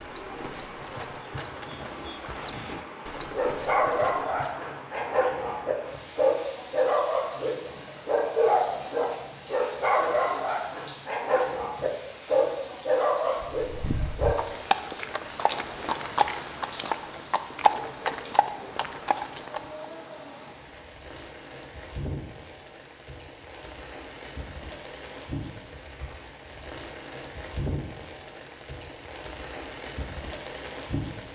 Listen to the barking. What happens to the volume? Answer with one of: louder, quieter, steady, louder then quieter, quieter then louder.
steady.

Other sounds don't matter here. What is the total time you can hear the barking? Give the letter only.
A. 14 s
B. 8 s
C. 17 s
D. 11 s
D.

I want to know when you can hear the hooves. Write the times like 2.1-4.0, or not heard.
0.0-4.8, 13.7-19.9.